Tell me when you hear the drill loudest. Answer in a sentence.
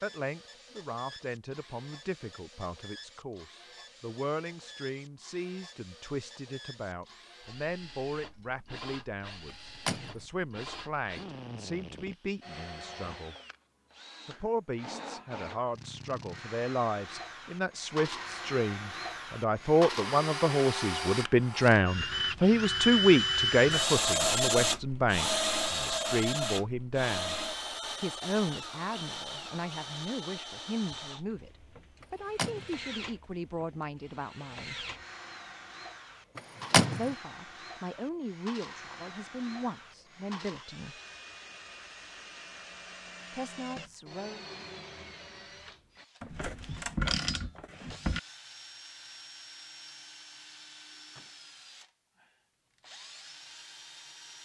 The loudest moment of the drill is at 24 seconds.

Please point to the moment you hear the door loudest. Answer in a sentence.
The loudest moment of the door is at 37 seconds.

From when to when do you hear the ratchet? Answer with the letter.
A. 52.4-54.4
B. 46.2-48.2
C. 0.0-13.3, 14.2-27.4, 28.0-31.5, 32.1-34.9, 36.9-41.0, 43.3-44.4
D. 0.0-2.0
B.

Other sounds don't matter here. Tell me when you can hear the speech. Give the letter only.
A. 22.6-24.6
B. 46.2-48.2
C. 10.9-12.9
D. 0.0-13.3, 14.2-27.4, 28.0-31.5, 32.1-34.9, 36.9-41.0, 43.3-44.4
D.